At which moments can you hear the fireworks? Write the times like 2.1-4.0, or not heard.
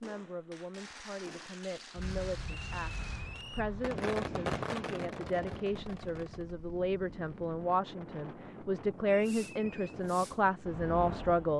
0.0-6.5, 9.2-11.5.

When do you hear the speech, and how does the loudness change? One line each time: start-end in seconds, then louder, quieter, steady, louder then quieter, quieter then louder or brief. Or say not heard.
0.0-2.9 brief
3.5-11.5 louder.